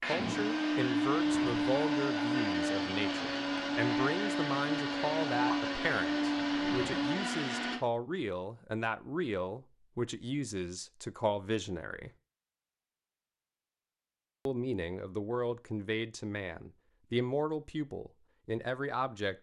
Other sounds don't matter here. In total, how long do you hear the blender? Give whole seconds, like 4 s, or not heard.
8 s.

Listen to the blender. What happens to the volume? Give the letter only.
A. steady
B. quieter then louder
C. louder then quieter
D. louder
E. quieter
A.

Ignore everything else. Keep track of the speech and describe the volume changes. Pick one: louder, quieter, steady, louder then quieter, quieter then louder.
steady.